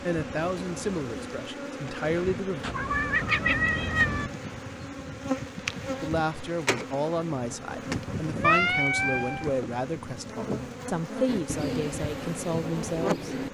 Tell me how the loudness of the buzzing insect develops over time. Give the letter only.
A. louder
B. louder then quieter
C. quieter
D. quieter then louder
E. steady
E.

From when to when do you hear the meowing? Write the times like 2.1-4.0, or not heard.
2.6-4.3, 7.9-9.5.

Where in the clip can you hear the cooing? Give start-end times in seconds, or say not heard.
11.2-13.4.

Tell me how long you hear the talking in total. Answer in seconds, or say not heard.
10 s.